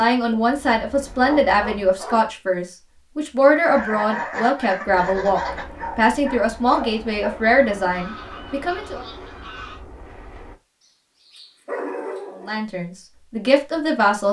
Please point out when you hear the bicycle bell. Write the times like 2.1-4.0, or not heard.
not heard.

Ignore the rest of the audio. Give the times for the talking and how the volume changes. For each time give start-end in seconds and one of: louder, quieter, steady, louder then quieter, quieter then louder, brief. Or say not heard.
0.0-9.1 steady
12.3-14.2 brief.